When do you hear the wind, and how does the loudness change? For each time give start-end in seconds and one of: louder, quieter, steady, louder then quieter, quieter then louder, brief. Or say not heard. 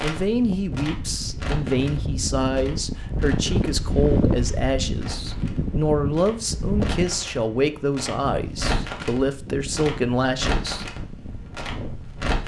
0.2-12.4 louder then quieter.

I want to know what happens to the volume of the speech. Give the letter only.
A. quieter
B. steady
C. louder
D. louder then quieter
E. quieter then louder
B.